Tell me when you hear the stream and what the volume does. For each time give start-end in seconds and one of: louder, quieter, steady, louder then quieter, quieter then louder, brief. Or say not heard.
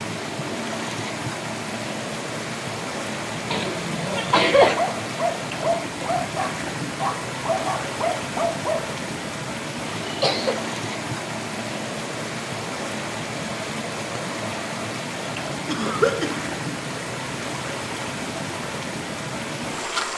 0.0-20.1 steady.